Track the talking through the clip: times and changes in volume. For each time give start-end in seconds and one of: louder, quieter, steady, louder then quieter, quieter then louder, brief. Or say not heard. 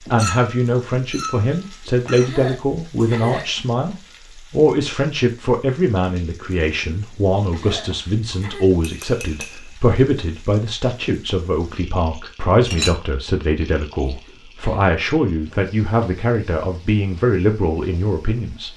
0.1-18.7 steady.